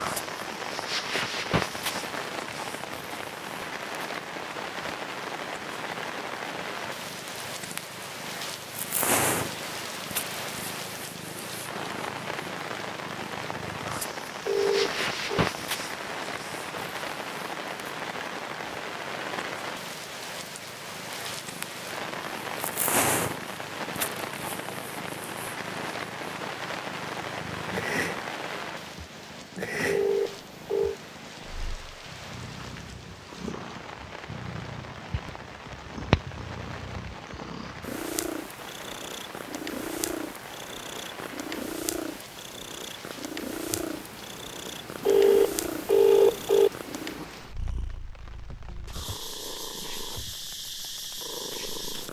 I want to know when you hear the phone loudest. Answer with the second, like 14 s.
46 s.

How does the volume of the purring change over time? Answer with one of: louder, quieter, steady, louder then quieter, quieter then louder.
steady.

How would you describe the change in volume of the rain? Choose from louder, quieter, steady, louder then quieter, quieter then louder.
quieter.